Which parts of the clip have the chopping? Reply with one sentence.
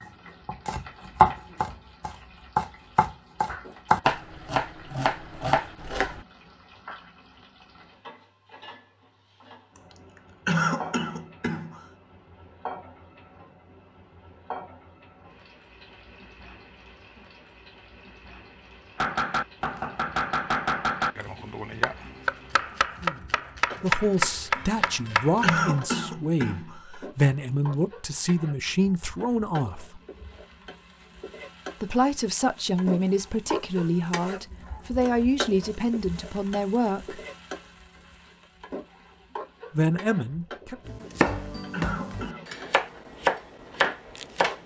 You can hear the chopping from 0.5 to 6.2 s, from 18.9 to 25.8 s and from 40.9 to 44.6 s.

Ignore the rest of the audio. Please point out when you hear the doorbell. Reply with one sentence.
The doorbell can't be heard in this clip.